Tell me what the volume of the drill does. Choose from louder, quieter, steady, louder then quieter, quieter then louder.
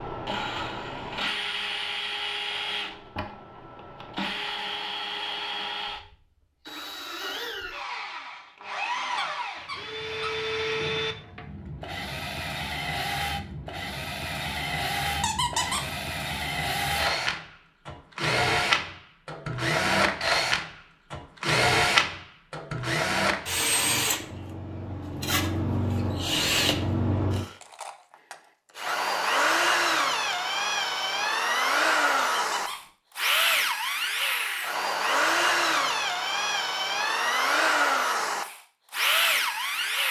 louder.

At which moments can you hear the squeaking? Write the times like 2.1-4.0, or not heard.
9.2-10.3, 15.2-15.9, 32.2-32.9.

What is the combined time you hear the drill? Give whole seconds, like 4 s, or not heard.
40 s.